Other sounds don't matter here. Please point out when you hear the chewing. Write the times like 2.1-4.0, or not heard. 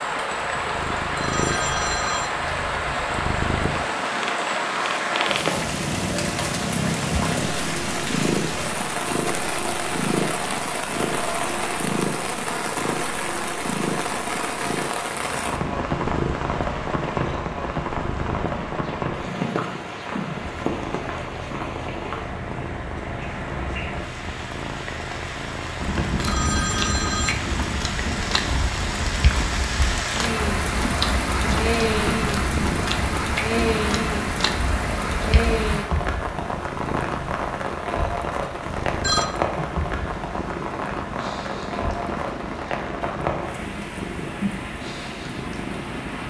25.8-35.8.